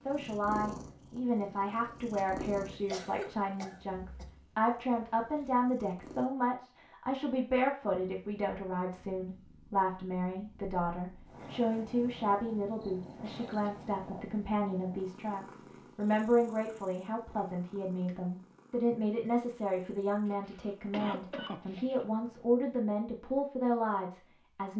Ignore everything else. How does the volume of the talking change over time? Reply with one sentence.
The volume of the talking stays about the same.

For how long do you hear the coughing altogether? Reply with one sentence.
You can hear the coughing for 5 seconds altogether.